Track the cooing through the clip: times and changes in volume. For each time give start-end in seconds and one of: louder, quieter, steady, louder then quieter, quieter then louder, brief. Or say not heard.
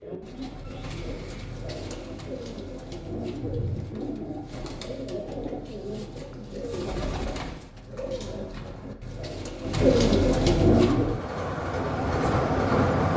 0.0-11.2 louder.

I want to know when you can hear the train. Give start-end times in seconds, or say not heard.
10.7-13.1.